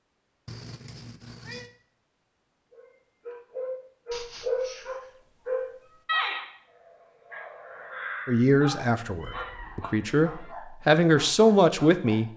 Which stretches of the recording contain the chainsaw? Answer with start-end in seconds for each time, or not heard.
not heard.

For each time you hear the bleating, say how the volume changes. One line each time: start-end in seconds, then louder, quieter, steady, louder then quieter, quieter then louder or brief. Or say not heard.
not heard.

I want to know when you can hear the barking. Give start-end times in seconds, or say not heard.
2.7-12.2.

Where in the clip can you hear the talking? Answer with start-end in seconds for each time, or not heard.
8.2-12.3.